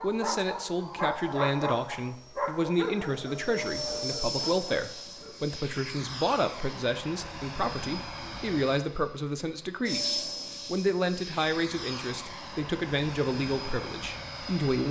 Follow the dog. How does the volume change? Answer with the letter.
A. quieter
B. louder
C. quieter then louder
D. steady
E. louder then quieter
A.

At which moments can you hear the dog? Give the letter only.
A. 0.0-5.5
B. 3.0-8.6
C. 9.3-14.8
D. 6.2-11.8
A.